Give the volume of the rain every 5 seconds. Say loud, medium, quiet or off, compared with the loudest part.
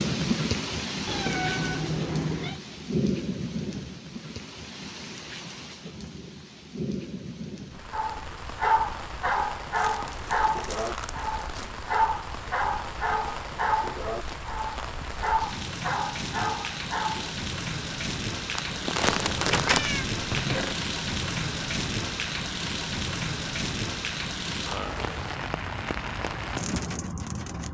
loud, medium, medium, loud, loud, loud.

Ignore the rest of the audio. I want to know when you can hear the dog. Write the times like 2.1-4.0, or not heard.
7.9-17.4.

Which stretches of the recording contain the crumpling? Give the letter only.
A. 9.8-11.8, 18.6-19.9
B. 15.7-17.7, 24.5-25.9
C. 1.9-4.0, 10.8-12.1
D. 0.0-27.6
A.